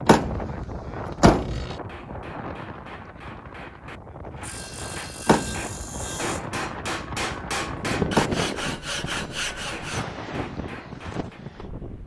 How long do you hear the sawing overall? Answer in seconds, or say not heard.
5 s.